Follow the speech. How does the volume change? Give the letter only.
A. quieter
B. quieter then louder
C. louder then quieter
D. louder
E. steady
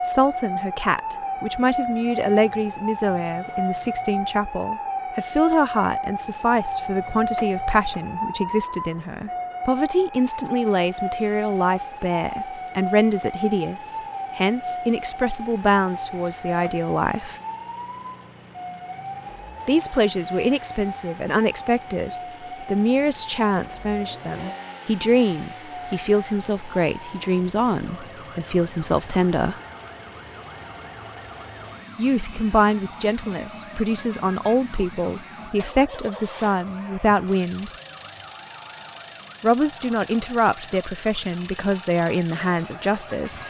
E.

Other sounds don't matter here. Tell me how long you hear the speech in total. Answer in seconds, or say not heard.
37 s.